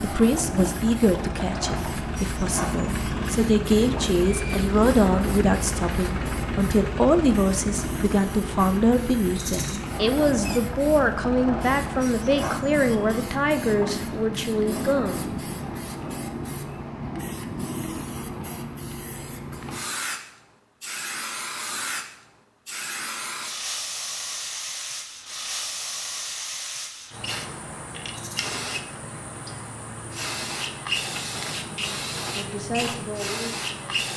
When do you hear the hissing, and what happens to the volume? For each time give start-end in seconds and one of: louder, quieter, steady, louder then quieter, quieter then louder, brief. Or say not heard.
0.0-34.1 steady.